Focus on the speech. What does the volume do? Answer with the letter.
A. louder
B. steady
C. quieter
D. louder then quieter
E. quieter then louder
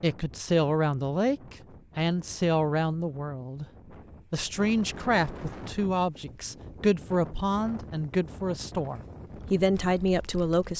B.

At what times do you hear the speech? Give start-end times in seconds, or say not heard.
0.0-3.6, 4.3-10.7.